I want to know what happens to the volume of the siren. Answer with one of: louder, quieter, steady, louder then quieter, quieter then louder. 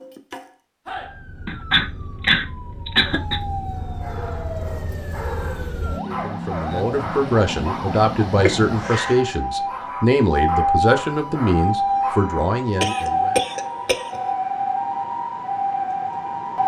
louder.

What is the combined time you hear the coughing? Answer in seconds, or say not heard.
4 s.